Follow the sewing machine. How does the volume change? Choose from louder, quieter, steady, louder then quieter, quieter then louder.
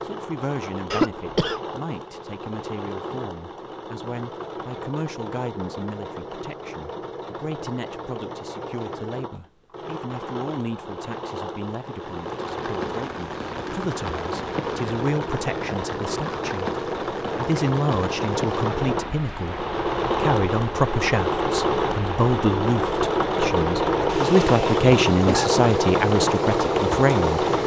louder.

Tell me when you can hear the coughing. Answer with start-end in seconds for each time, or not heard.
0.9-1.6, 24.1-25.6.